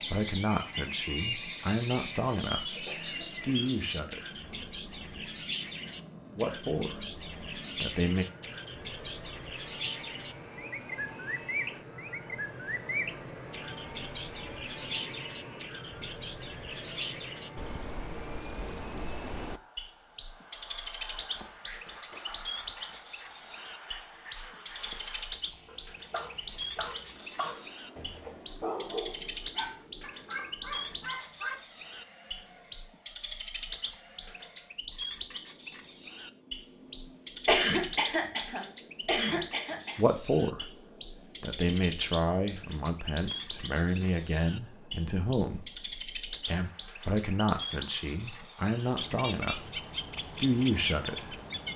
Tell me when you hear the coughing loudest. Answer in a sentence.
The loudest moment of the coughing is at 38 seconds.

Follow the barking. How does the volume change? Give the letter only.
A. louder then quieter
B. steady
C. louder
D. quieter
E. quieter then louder
C.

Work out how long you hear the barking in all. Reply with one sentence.
The barking can be heard for 10 seconds in total.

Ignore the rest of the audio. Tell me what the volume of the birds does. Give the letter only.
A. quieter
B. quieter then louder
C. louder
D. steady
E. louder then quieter
D.